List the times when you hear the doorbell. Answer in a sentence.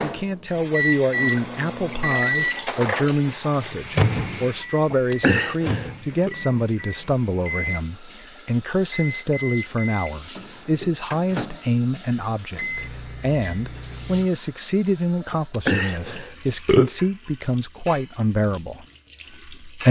You can't hear the doorbell here.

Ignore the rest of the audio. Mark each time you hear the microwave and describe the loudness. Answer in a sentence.
The microwave can be heard from 0.0 to 14.3 s, getting quieter.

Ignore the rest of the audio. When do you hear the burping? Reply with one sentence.
The burping can be heard from 4.9 to 6.3 s and from 15.3 to 16.9 s.